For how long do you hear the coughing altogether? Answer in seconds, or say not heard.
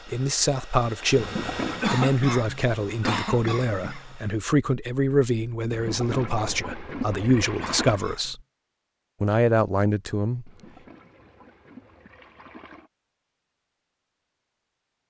3 s.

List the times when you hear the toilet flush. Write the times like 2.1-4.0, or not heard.
1.1-1.9, 5.7-8.0, 10.4-12.9.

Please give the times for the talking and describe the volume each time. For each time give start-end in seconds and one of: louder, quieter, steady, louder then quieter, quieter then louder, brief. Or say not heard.
0.1-8.4 steady
9.2-10.5 brief.